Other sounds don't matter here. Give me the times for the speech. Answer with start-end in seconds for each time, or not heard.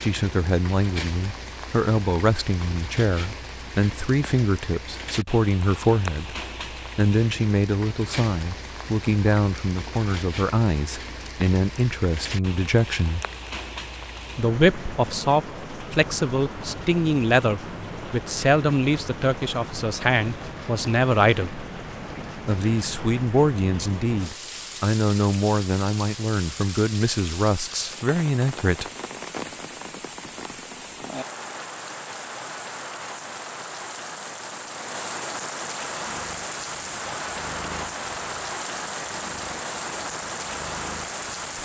0.0-6.3, 7.0-13.2, 14.3-21.6, 22.4-28.9.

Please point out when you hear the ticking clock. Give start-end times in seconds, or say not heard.
not heard.